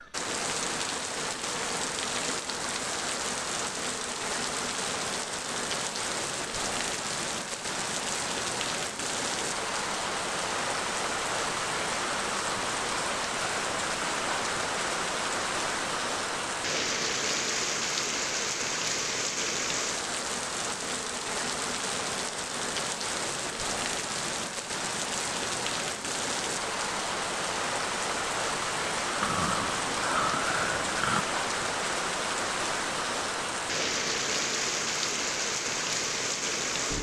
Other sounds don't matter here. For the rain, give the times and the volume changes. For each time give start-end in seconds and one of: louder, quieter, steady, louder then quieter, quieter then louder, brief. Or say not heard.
0.0-36.9 steady.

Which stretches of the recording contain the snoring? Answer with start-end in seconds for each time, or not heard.
29.2-31.2.